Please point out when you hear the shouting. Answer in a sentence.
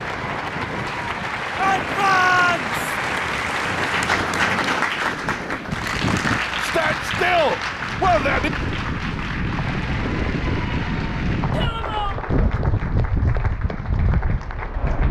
The shouting can be heard from 1.6 to 2.7 s, from 6.6 to 8.5 s and from 11.5 to 12.2 s.